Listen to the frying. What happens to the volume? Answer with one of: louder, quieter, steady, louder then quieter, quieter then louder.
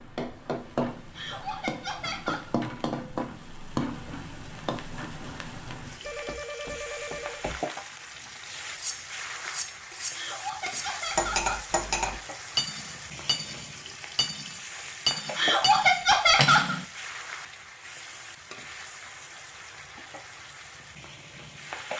quieter.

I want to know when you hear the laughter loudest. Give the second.
16 s.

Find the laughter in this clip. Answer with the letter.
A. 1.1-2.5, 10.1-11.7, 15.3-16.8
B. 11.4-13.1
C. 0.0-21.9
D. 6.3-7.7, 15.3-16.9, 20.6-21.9
A.